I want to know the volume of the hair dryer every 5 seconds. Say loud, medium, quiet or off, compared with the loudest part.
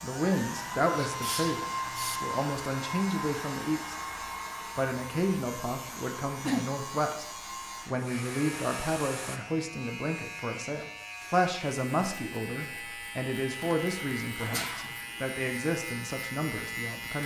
loud, medium, off, off.